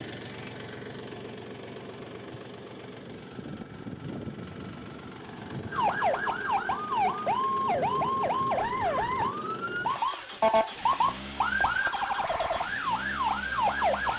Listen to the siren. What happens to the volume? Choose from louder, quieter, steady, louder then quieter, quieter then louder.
steady.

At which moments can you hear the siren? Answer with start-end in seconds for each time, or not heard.
5.7-14.1.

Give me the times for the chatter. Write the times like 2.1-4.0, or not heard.
not heard.